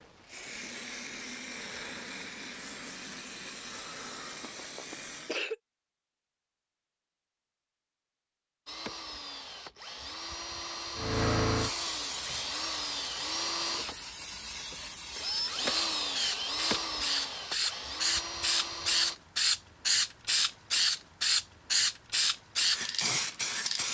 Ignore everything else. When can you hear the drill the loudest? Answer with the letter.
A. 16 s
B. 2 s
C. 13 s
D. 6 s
A.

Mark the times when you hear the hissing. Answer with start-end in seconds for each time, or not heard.
0.0-5.5, 10.9-23.9.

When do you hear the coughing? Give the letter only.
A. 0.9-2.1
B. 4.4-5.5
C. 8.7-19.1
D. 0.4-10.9
B.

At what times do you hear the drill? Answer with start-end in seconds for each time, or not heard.
8.7-19.1.